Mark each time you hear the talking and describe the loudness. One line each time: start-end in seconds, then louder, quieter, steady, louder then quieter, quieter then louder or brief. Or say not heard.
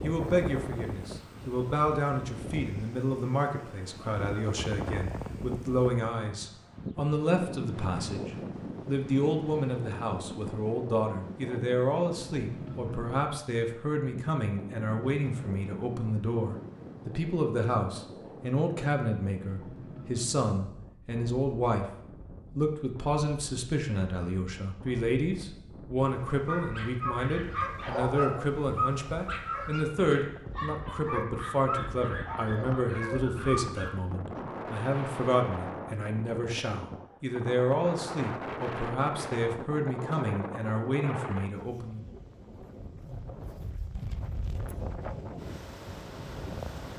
0.0-21.9 steady
22.6-42.0 steady.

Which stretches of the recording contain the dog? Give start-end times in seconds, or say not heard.
26.3-34.4.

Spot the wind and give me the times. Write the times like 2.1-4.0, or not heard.
0.0-46.9.